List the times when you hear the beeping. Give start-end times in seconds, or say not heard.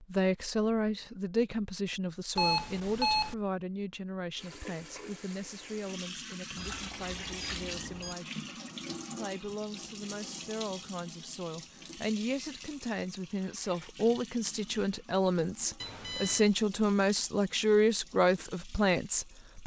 2.4-3.4, 6.5-8.2, 15.8-16.5.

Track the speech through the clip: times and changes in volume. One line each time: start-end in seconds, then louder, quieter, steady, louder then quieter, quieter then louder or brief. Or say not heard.
0.0-19.6 quieter then louder.